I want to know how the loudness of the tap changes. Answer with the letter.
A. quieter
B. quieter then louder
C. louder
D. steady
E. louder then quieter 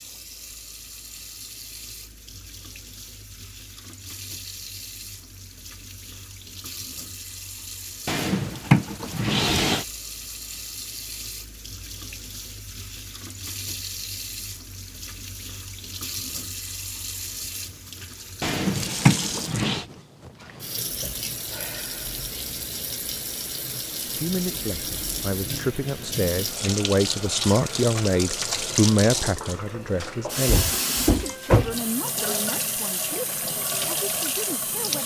C.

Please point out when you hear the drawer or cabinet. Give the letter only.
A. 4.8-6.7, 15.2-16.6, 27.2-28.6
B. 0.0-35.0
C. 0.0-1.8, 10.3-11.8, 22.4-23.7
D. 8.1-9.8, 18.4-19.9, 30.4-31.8
D.